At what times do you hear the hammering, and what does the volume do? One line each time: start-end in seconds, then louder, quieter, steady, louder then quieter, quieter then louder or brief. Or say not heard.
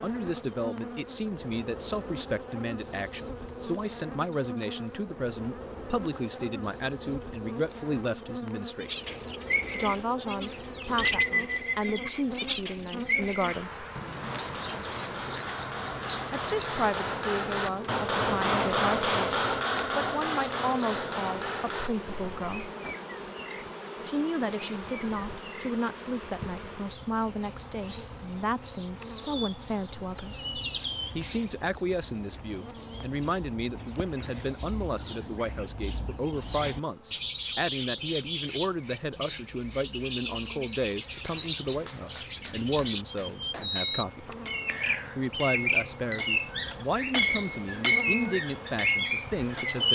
14.2-22.5 louder then quieter
41.2-49.8 louder.